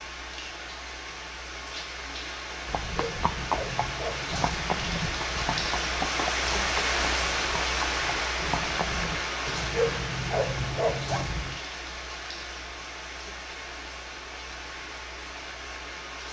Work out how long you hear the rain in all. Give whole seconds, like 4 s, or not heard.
16 s.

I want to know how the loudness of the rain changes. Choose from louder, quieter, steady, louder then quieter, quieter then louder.
louder then quieter.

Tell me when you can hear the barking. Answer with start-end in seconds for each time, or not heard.
2.6-4.5, 9.4-11.6.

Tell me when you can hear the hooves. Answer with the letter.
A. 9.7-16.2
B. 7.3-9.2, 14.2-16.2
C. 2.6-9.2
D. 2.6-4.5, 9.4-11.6
C.